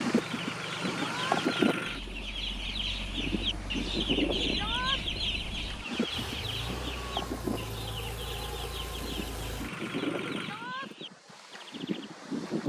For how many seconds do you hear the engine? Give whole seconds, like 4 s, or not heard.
11 s.